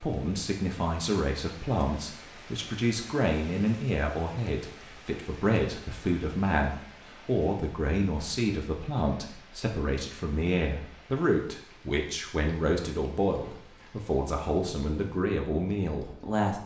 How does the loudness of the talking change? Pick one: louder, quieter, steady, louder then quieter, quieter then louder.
steady.